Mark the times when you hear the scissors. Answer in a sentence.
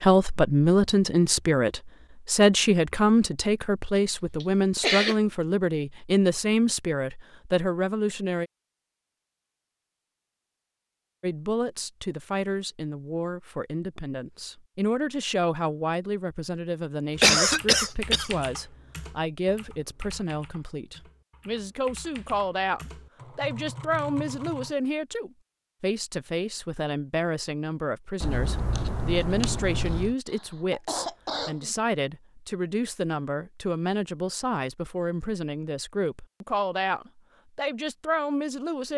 You can hear the scissors from 28.2 to 30.1 s.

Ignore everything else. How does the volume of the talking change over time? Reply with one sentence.
The volume of the talking goes down.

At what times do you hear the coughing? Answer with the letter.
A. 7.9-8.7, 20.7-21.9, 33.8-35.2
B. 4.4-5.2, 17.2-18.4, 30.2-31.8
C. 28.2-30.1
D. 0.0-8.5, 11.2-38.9
B.